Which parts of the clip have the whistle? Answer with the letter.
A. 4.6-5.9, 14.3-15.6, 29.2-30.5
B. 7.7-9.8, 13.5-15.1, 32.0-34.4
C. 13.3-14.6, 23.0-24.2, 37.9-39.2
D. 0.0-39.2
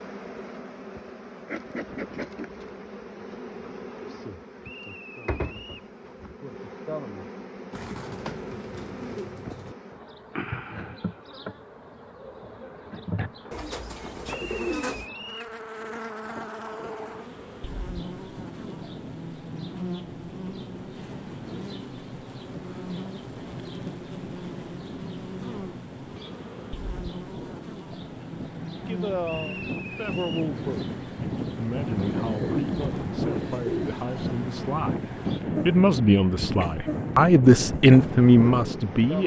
A.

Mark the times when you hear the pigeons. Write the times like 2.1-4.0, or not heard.
7.7-9.8, 13.5-15.1, 32.0-34.4.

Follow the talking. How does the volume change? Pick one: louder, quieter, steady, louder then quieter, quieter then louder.
louder.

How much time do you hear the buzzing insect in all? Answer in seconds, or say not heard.
39 s.